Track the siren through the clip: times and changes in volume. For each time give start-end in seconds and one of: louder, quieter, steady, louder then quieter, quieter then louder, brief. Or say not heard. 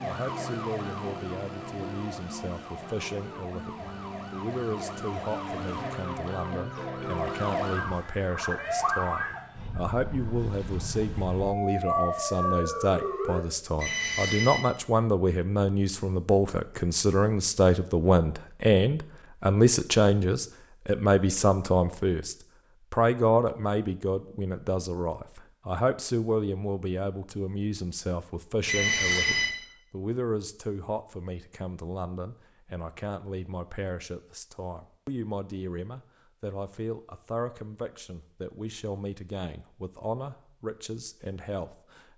0.0-13.4 louder.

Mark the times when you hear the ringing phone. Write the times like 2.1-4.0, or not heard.
13.8-14.6, 28.6-29.5.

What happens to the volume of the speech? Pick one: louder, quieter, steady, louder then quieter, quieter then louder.
louder then quieter.